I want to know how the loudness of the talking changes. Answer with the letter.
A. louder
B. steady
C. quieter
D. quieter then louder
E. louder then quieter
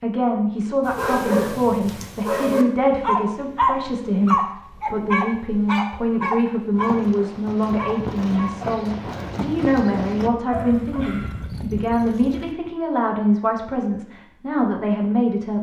B.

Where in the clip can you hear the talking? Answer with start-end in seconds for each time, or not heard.
0.0-15.5.